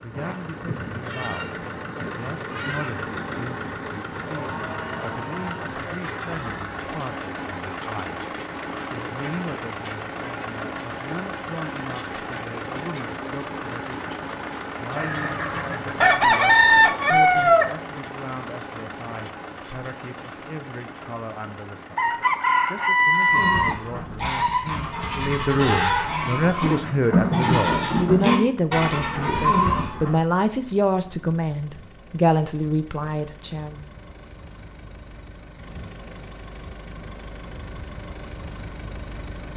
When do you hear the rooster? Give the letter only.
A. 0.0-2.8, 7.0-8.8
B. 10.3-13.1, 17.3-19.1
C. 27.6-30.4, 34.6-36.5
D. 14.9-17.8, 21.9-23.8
D.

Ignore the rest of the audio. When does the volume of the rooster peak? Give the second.
17 s.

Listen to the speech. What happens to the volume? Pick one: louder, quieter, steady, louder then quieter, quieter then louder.
louder.